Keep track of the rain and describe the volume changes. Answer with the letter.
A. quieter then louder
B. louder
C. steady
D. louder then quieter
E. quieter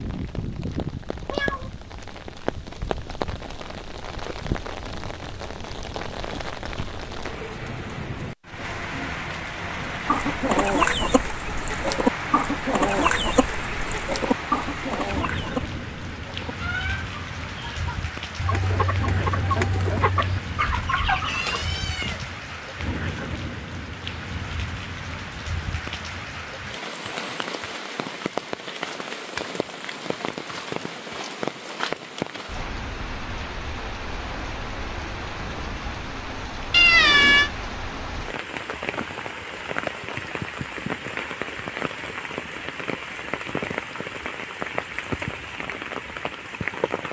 C.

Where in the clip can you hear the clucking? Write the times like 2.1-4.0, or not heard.
9.8-21.6.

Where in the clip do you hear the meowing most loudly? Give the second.
37 s.